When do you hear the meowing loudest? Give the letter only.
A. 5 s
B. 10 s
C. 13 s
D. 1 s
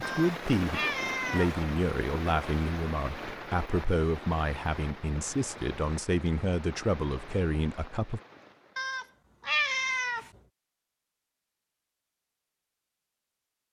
B.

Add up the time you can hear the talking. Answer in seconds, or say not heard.
8 s.